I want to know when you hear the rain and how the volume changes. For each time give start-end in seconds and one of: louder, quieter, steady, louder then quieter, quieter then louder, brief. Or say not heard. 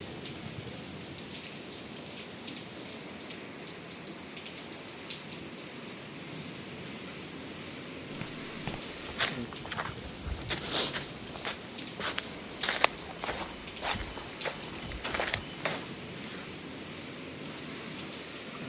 0.0-18.6 steady.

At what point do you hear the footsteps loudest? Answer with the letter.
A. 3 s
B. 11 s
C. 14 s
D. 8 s
B.